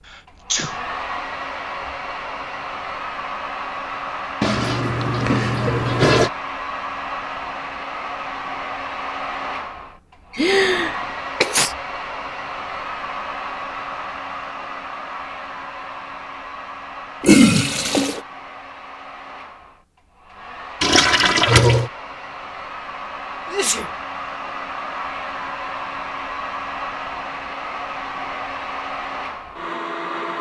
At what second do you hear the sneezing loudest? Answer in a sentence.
The volume of the sneezing peaks at 11 seconds.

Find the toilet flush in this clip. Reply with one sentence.
You can hear the toilet flush from 4.4 to 6.3 s, from 17.2 to 18.2 s and from 20.8 to 21.9 s.